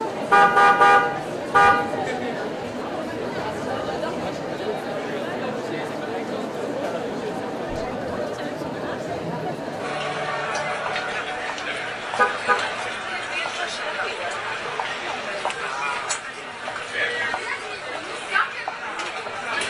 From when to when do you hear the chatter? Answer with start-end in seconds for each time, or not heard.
0.0-19.6.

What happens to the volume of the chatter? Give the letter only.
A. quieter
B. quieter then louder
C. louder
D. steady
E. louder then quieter
D.